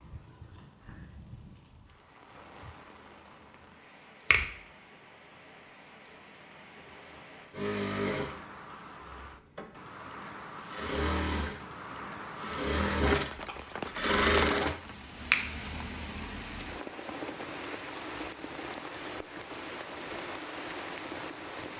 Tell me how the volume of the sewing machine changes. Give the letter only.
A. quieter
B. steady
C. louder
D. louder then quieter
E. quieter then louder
E.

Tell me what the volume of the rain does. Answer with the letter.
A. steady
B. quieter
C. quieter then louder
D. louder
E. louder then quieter
D.